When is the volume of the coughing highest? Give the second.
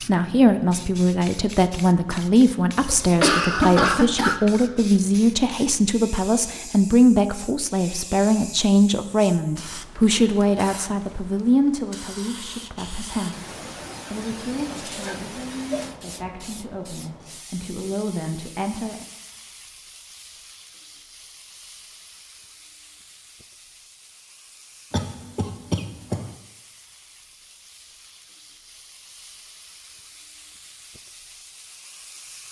4 s.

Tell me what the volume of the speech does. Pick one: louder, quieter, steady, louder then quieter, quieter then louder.
quieter.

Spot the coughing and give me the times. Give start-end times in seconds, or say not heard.
2.9-4.3, 13.3-15.9, 24.9-26.4.